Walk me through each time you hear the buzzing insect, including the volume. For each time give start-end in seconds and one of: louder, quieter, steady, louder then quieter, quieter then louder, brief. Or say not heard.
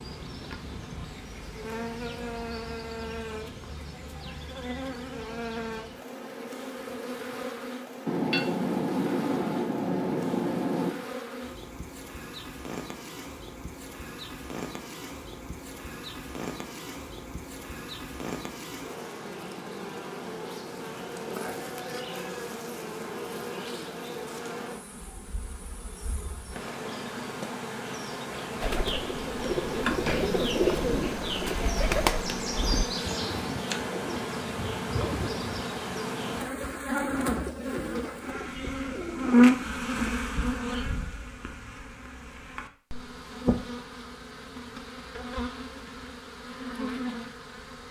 0.0-47.8 louder.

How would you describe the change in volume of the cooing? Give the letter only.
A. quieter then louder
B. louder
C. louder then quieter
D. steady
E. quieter
E.